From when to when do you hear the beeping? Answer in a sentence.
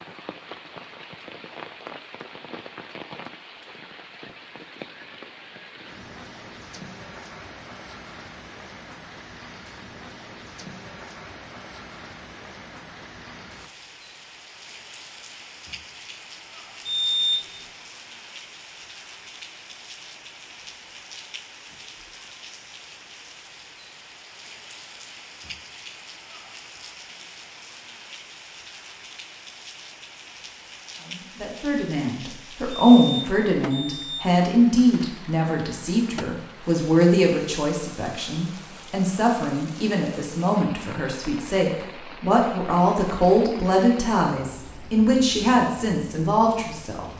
The beeping can be heard from 16.9 to 17.4 s and from 32.7 to 34.2 s.